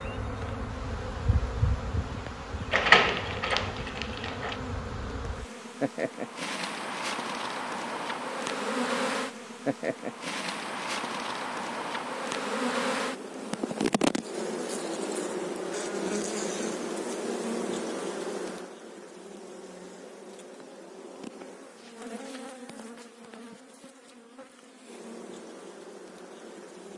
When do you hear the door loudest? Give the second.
3 s.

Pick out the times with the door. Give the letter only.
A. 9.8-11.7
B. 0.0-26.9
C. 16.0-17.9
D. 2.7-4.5
D.